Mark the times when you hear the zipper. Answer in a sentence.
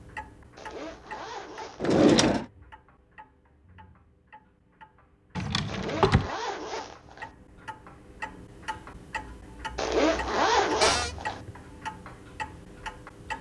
The zipper can be heard from 0.6 to 2.0 s, from 5.7 to 7.3 s and from 9.8 to 11.4 s.